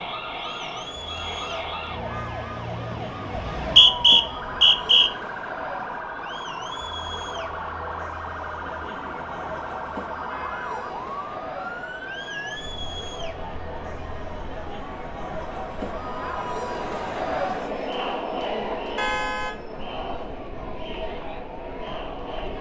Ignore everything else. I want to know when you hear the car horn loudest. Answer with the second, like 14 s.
19 s.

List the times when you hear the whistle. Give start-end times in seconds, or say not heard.
3.4-5.1.